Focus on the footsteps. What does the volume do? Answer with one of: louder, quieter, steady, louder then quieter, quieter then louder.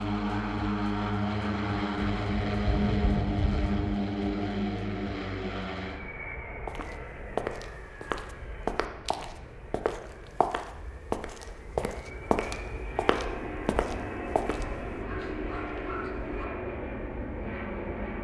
steady.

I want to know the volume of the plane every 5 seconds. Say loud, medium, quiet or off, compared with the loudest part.
loud, medium, medium, medium.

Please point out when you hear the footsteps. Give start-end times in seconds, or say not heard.
6.7-14.9.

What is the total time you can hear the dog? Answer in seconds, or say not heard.
2 s.